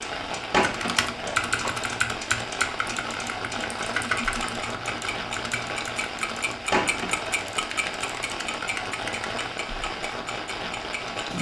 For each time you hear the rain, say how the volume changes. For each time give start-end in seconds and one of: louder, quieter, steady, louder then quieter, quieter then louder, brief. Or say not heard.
0.0-11.3 steady.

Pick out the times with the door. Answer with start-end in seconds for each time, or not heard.
0.5-1.8, 6.7-7.3.